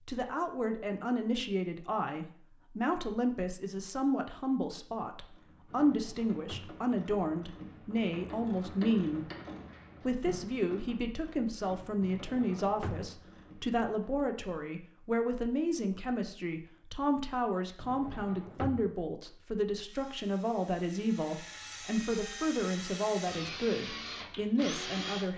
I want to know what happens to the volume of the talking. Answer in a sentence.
The loudness of the talking stays about the same.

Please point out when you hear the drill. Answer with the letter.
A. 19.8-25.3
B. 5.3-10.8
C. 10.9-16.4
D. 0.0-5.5
A.